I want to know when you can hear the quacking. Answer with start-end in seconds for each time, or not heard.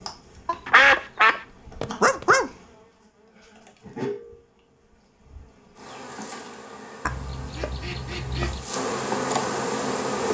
0.5-2.5, 7.0-8.7.